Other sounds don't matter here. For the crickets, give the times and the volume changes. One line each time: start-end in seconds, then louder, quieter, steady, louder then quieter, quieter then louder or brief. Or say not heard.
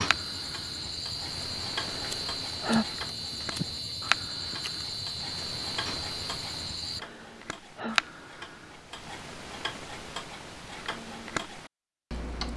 0.0-7.0 steady.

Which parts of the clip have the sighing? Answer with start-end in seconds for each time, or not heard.
1.8-2.9, 7.0-8.0.